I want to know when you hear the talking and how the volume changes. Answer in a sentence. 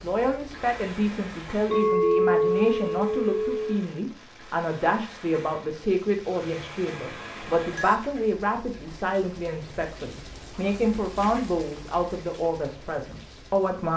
You can hear the talking from 0.0 to 13.9 s, at a steady volume.